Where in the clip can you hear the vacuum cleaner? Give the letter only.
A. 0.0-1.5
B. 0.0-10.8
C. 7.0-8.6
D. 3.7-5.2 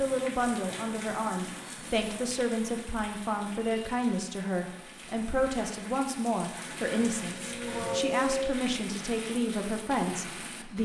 C.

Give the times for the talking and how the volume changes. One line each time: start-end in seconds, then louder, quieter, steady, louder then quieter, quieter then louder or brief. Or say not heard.
0.0-10.8 steady.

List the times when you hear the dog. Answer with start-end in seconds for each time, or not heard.
not heard.